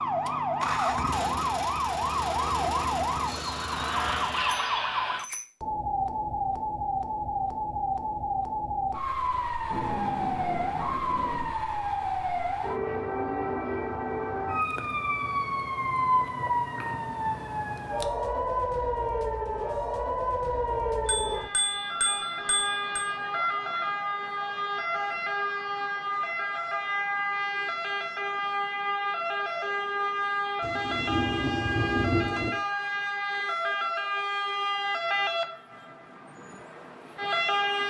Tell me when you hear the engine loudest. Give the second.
1 s.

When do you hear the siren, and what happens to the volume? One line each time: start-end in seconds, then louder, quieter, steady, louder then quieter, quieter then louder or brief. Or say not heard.
0.0-37.8 steady.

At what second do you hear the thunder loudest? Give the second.
32 s.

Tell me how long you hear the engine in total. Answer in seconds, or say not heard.
5 s.